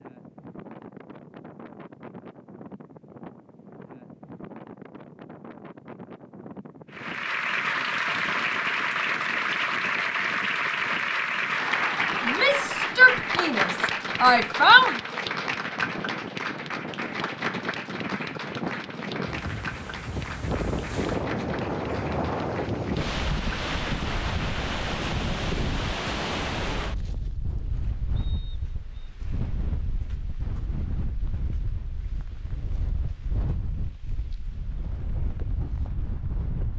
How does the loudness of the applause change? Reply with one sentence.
The loudness of the applause goes down.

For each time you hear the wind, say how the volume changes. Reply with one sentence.
The wind can be heard from 0.0 to 36.7 s, getting louder then quieter.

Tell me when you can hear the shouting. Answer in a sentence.
The shouting can be heard from 12.2 to 15.0 s.